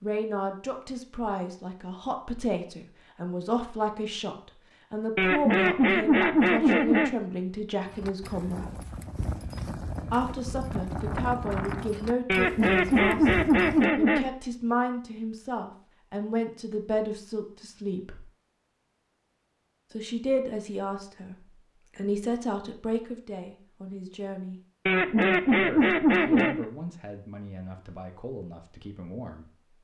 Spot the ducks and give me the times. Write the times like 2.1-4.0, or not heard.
5.2-7.2, 12.2-14.3, 24.9-26.6.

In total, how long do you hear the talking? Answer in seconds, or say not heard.
25 s.